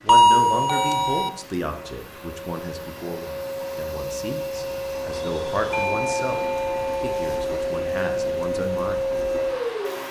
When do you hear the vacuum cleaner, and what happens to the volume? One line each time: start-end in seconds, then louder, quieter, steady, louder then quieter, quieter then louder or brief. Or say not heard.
0.0-10.0 louder.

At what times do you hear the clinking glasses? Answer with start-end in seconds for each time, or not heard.
not heard.